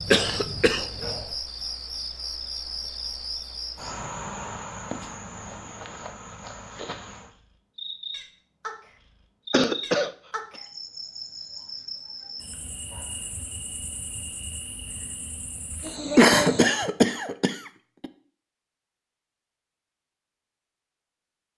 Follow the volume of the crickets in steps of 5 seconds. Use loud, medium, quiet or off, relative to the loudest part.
loud, medium, medium, loud, off.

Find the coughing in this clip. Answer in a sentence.
The coughing can be heard from 0.1 to 1.2 s, from 9.5 to 10.1 s and from 16.1 to 18.1 s.